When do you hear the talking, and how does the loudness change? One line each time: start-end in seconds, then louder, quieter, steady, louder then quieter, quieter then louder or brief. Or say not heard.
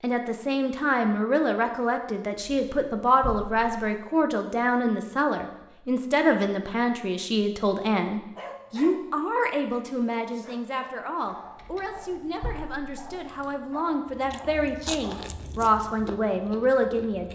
0.0-17.3 quieter then louder.